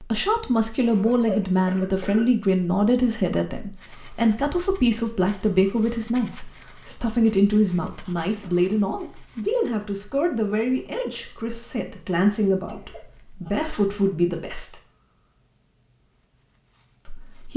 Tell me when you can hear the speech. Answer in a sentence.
The speech can be heard from 0.0 to 14.8 s and from 17.1 to 17.5 s.